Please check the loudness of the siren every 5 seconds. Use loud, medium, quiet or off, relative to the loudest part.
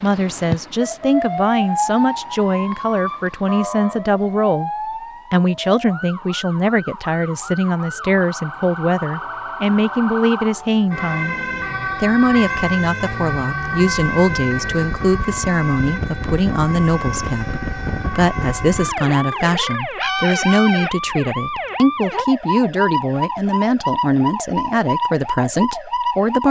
loud, medium, loud, loud, loud, loud.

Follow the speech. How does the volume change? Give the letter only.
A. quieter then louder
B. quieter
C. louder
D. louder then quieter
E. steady
E.